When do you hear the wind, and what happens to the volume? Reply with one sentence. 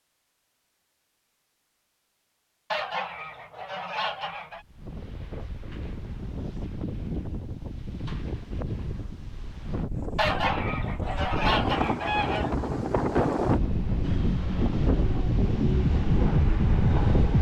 You can hear the wind from 4.5 to 17.3 s, getting louder.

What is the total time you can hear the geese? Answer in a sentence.
You can hear the geese for 4 seconds altogether.